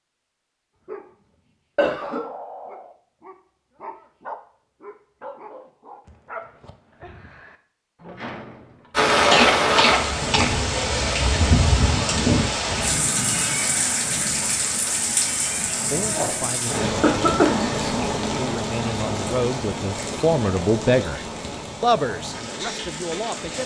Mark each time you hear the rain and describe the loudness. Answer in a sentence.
You can hear the rain from 8.9 to 23.6 s, getting quieter.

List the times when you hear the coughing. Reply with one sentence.
You can hear the coughing from 1.8 to 2.2 s, from 9.3 to 11.2 s and from 16.6 to 17.8 s.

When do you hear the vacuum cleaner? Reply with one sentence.
You can't hear the vacuum cleaner here.